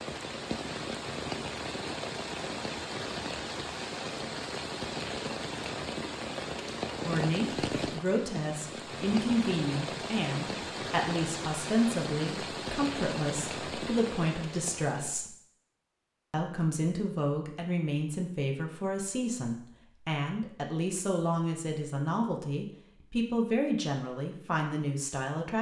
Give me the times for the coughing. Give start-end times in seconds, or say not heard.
not heard.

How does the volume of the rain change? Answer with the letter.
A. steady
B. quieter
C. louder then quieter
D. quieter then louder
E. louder
A.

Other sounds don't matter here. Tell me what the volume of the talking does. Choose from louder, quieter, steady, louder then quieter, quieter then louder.
steady.